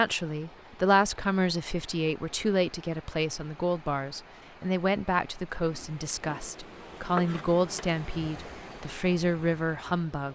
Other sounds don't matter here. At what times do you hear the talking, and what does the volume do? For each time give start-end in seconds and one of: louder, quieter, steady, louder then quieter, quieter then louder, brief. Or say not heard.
0.0-10.2 steady.